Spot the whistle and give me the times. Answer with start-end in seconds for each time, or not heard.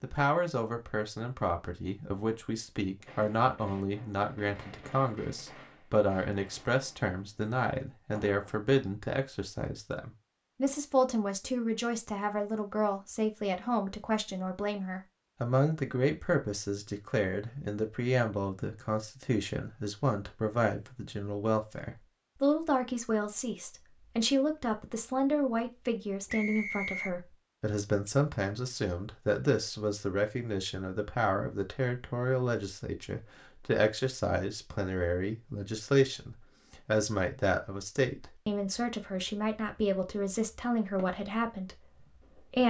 26.2-27.1.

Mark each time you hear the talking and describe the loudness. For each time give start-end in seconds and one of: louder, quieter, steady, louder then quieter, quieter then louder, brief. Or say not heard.
0.0-42.6 steady.